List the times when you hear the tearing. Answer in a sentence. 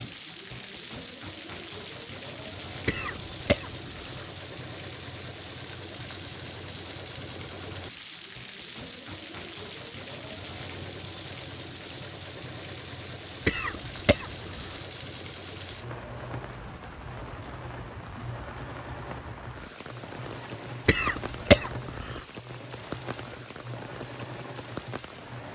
The tearing can't be heard in this clip.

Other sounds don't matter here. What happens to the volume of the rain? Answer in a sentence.
The volume of the rain stays about the same.